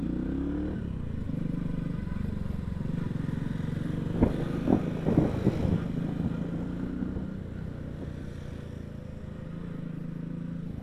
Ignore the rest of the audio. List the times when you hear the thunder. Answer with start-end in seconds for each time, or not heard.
4.2-8.1.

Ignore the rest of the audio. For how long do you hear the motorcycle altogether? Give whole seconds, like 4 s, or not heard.
11 s.